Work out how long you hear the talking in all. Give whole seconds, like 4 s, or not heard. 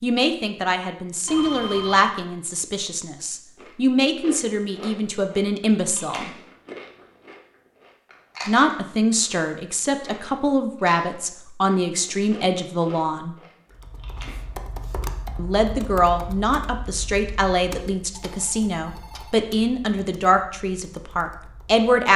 18 s.